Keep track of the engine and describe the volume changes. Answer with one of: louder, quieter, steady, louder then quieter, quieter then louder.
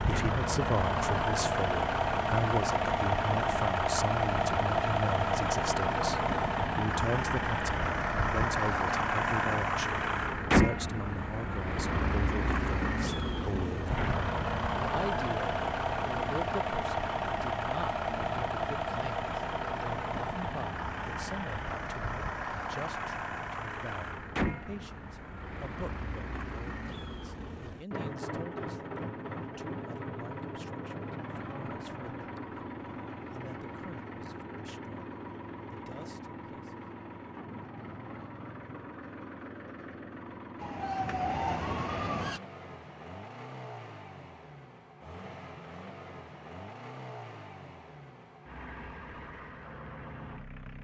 quieter.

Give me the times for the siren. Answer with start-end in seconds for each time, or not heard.
40.6-42.4.